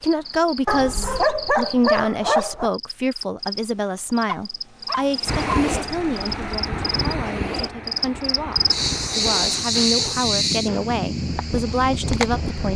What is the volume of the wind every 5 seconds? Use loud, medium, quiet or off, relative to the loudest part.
off, loud, loud.